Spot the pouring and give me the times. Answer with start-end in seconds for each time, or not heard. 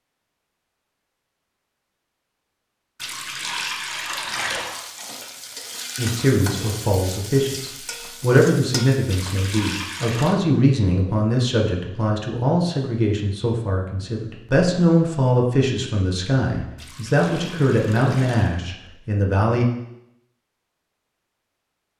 3.0-4.8, 9.1-10.3, 16.8-18.6.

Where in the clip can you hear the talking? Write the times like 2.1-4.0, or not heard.
6.0-19.6.